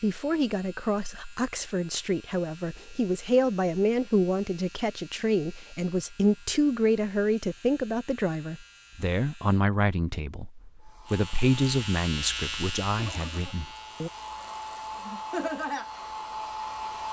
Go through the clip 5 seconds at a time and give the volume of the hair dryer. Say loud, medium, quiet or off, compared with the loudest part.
off, off, medium, loud.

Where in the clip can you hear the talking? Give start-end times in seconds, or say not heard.
0.0-14.1.